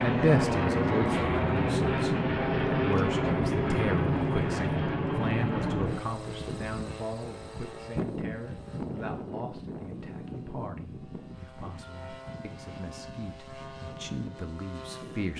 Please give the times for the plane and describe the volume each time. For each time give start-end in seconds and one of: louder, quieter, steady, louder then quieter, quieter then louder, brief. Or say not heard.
0.0-15.3 quieter.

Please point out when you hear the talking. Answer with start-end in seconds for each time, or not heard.
0.0-15.3.